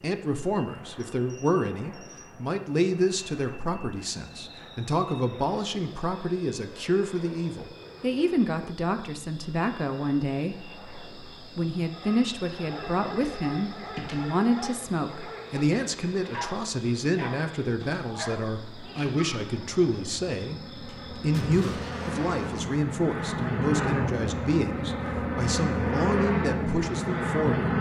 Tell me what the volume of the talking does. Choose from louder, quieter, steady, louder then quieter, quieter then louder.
steady.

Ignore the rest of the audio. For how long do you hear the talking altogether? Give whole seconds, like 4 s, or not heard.
28 s.